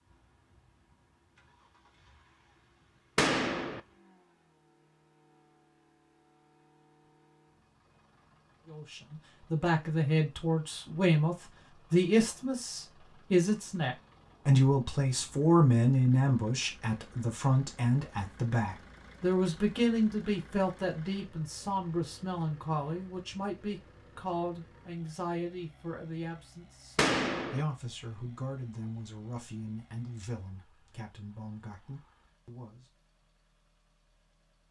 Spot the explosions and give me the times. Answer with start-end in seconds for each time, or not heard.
3.1-3.8, 26.9-27.6.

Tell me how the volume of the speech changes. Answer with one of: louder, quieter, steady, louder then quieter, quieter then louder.
quieter.